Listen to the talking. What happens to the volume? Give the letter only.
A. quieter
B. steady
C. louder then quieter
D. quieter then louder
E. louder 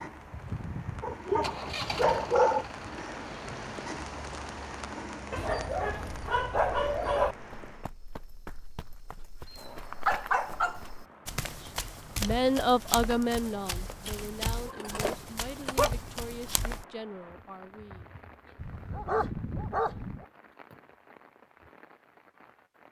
A.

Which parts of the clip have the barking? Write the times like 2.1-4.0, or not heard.
1.0-2.6, 5.3-7.3, 9.5-10.8, 14.1-15.9, 18.6-20.2.